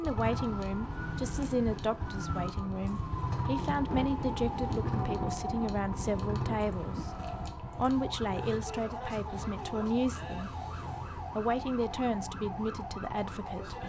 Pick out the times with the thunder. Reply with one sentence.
The thunder can be heard from 3.5 to 7.0 s.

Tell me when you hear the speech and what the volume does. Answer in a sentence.
You can hear the speech from 0.0 to 10.6 s, at a steady volume; and briefly from 11.3 to 13.8 s.